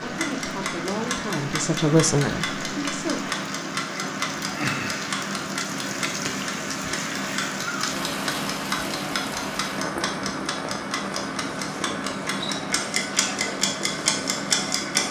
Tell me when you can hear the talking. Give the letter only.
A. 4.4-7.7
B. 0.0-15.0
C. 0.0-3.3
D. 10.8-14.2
C.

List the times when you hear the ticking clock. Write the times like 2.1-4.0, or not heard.
0.0-15.0.